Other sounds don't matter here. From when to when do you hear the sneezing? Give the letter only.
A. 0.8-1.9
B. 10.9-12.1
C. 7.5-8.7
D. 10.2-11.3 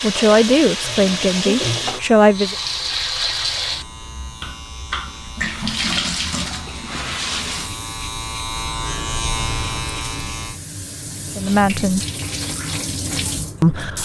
A.